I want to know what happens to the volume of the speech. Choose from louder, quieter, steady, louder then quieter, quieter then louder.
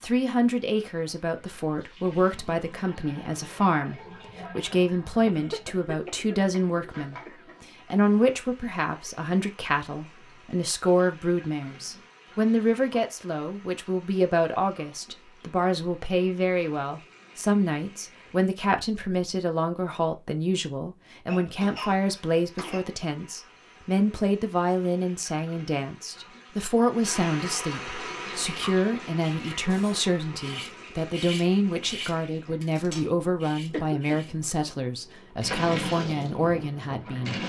steady.